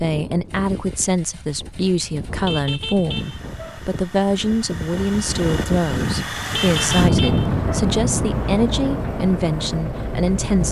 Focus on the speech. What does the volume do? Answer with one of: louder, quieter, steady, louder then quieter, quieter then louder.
steady.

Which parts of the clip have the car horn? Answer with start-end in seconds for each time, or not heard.
2.4-3.8, 6.5-7.7.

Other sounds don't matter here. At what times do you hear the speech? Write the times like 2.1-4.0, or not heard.
0.0-10.6.